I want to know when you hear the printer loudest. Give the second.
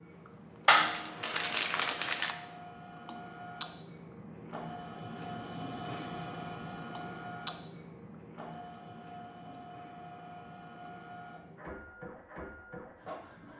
6 s.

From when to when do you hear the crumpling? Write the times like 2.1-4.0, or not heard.
0.7-2.4.